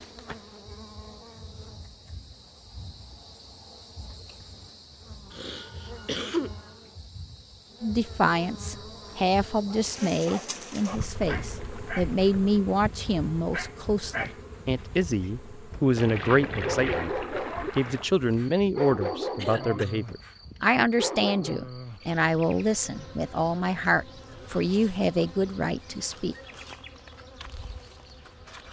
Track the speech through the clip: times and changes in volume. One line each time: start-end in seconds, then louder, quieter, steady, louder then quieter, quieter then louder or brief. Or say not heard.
7.8-26.4 steady.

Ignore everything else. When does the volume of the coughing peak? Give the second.
6 s.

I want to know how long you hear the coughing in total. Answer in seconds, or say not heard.
2 s.